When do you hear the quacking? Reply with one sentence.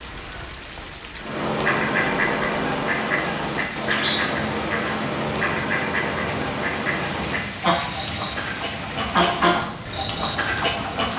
You can hear the quacking from 1.2 to 11.1 s.